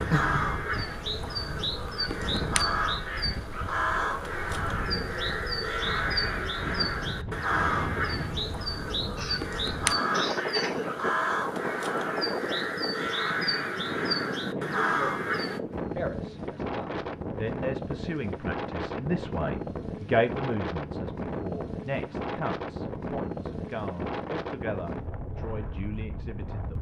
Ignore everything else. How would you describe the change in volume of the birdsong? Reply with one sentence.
The volume of the birdsong stays about the same.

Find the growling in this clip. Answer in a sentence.
You can hear the growling from 0.1 to 1.7 s.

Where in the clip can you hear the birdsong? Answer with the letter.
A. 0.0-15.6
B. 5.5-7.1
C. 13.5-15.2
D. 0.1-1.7
A.